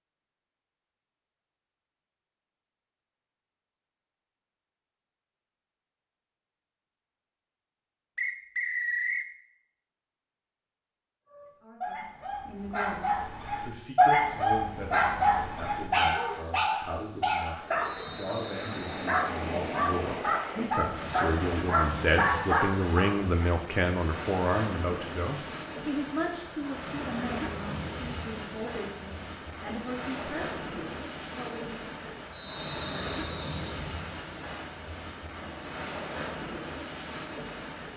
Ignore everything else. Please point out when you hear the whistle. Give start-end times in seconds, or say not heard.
8.2-9.3, 17.8-19.1, 32.3-33.5.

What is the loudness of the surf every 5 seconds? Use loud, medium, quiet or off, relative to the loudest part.
off, off, off, loud, loud, loud, loud, loud.